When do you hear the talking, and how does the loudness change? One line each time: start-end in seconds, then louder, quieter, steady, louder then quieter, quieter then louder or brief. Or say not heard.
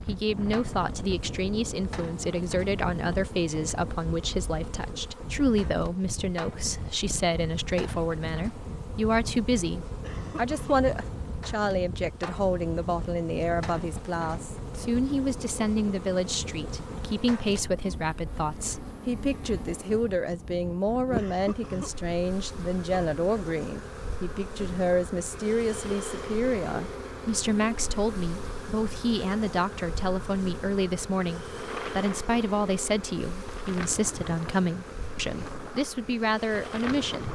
0.1-37.2 steady.